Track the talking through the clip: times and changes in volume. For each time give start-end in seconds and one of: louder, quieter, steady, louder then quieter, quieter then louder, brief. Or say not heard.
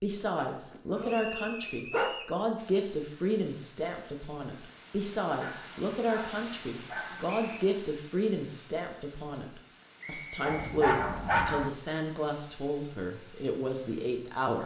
0.0-14.6 steady.